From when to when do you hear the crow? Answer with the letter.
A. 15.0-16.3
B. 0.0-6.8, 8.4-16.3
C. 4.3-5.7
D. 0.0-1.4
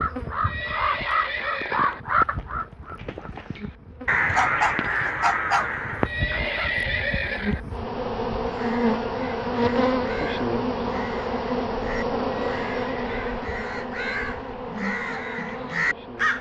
B.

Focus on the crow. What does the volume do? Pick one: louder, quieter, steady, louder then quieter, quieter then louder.
quieter then louder.